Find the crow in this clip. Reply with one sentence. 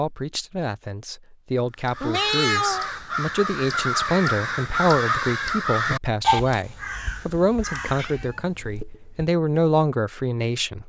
You can hear the crow from 1.8 to 8.4 s.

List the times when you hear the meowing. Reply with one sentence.
You can hear the meowing from 2.0 to 3.0 s and from 8.0 to 9.2 s.